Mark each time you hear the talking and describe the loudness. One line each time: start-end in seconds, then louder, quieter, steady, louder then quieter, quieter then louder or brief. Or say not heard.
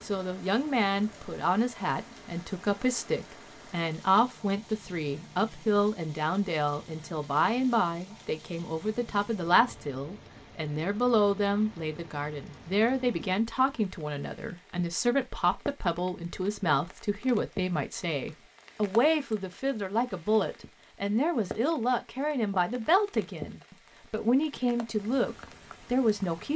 0.0-26.5 steady.